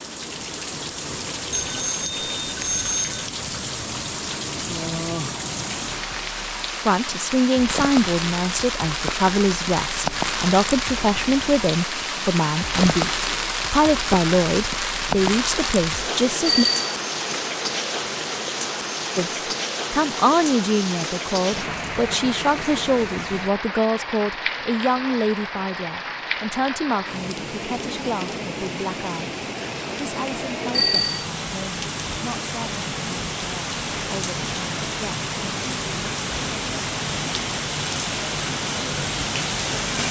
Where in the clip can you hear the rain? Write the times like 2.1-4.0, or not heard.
0.0-40.0.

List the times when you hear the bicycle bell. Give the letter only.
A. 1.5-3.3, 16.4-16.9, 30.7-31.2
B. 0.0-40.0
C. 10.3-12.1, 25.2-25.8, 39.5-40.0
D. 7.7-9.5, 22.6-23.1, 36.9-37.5
A.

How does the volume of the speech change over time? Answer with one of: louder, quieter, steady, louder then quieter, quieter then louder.
quieter.